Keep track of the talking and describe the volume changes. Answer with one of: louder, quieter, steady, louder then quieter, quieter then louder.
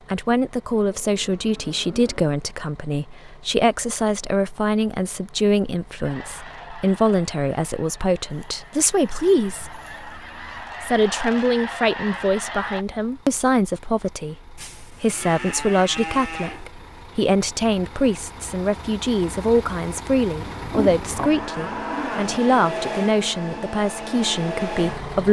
steady.